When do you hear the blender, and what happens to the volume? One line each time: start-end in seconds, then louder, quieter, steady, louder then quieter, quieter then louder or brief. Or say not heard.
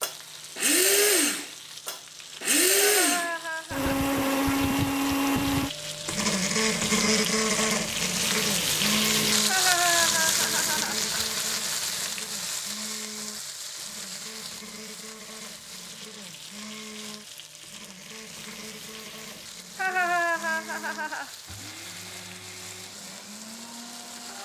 0.0-24.4 quieter.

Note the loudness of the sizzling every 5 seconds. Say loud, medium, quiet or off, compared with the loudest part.
quiet, loud, loud, quiet, quiet.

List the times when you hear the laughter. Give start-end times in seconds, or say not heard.
2.8-4.0, 9.4-11.0, 19.8-21.3.